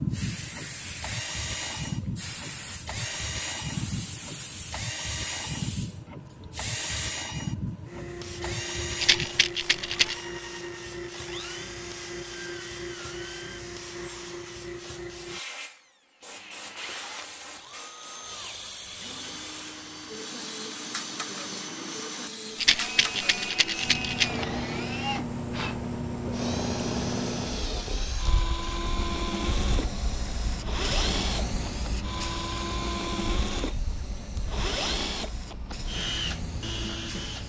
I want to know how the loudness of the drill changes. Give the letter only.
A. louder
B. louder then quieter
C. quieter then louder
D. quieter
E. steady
C.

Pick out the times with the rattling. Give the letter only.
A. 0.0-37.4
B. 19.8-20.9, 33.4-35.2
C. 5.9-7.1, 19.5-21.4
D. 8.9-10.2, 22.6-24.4
D.